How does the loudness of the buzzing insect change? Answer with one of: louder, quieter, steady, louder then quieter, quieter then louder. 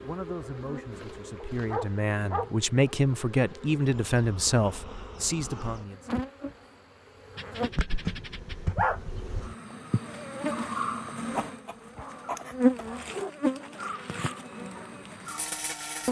louder.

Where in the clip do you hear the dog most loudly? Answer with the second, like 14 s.
9 s.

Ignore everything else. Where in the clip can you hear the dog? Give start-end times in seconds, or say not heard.
1.4-3.0, 7.3-9.0, 11.3-13.3.